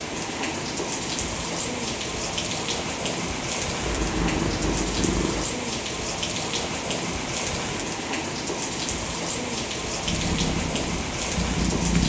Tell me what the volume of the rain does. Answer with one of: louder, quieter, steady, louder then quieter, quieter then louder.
steady.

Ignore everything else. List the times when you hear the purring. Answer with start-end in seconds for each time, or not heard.
3.8-5.5, 10.1-12.0.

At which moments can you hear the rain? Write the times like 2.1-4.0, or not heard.
0.0-12.0.